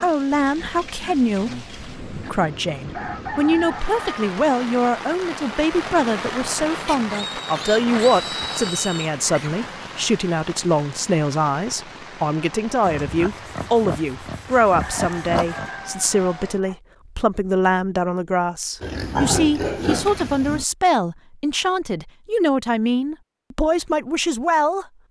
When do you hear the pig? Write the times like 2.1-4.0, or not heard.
0.3-2.3, 6.8-9.6, 12.8-15.7, 18.8-20.6.